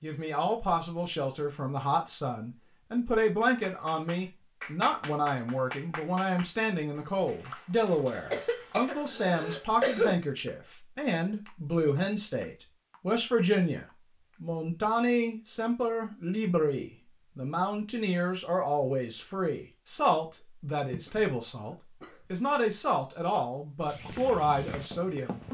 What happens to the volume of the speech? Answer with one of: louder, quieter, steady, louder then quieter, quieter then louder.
steady.